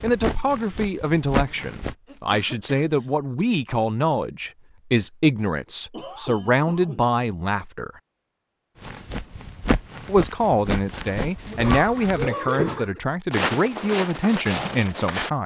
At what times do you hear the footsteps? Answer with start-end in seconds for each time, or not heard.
0.0-1.9, 8.8-15.3.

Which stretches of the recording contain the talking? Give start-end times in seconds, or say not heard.
0.0-7.9, 10.1-15.4.